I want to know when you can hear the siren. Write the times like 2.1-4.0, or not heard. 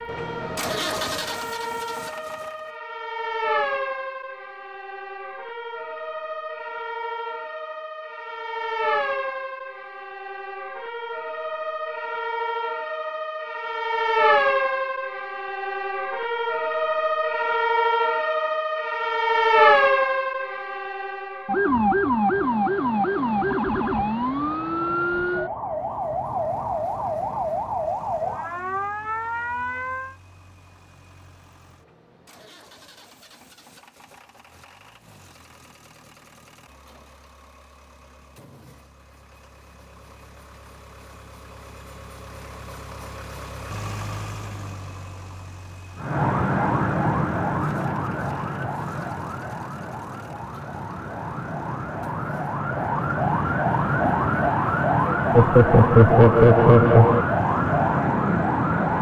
0.0-30.1, 46.0-58.9.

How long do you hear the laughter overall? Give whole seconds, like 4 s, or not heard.
2 s.